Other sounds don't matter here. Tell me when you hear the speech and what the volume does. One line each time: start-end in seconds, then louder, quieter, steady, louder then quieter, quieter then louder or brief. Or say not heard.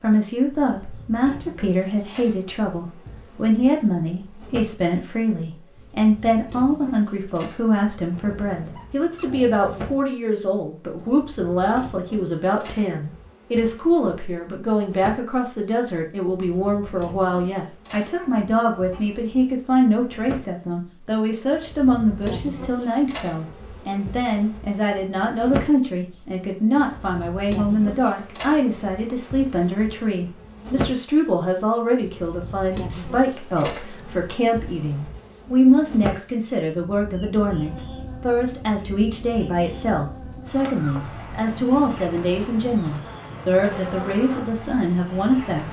0.0-45.6 steady.